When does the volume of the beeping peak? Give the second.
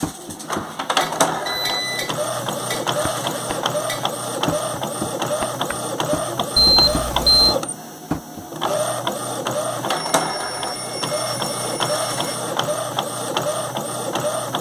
7 s.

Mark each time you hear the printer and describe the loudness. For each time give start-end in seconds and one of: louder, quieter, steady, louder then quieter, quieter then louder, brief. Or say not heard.
0.0-14.5 steady.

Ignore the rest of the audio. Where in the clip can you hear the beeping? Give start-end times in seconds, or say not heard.
1.4-2.1, 6.5-7.5, 9.8-12.4.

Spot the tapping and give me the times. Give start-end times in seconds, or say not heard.
0.0-8.4.